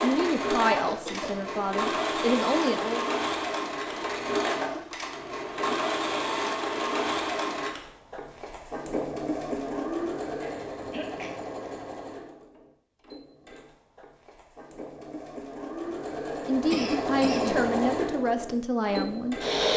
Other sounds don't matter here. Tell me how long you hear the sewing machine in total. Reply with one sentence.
You can hear the sewing machine for 20 seconds altogether.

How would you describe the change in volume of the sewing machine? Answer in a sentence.
The volume of the sewing machine goes down, then up.